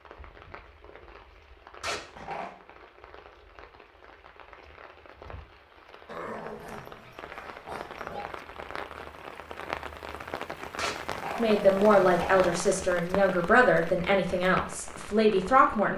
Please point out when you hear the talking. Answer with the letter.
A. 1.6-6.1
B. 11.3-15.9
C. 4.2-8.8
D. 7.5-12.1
B.